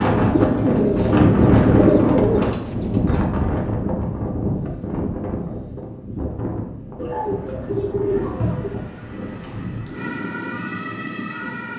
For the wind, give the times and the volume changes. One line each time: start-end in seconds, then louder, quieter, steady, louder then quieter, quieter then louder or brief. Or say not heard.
0.0-11.7 quieter.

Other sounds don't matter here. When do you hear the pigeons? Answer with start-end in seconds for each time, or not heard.
0.3-3.2, 7.0-8.8.